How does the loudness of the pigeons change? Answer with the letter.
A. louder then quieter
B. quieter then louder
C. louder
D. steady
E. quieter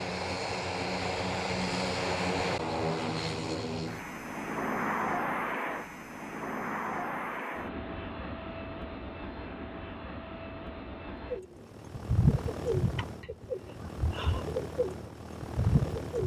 B.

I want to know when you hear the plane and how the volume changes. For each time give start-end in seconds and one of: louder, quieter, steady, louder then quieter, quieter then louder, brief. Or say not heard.
0.0-16.2 quieter.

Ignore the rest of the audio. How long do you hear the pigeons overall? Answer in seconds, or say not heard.
5 s.